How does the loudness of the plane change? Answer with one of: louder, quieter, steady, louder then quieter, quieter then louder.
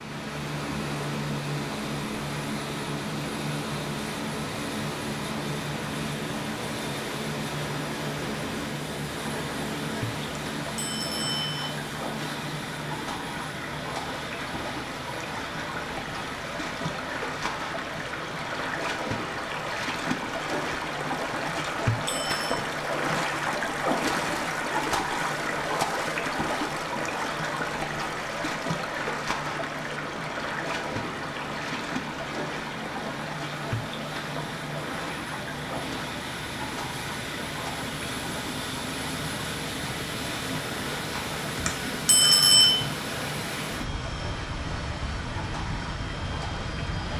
quieter then louder.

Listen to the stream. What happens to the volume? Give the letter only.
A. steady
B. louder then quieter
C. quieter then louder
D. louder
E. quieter
B.